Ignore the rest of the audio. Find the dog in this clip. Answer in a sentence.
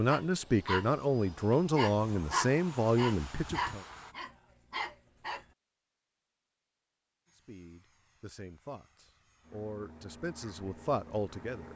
The dog can be heard from 0.1 to 1.1 s and from 1.8 to 5.5 s.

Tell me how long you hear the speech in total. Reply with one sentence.
You can hear the speech for 8 seconds altogether.